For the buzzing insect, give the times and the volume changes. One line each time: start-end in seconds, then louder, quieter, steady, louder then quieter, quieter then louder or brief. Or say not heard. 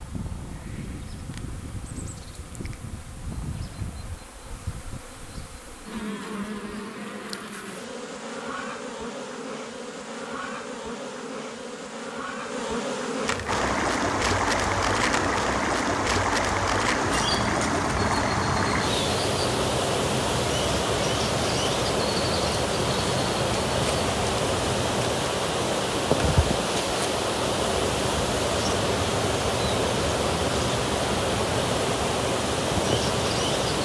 0.0-33.7 louder.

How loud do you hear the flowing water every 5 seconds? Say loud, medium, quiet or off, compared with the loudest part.
off, off, loud, loud, loud, loud, loud.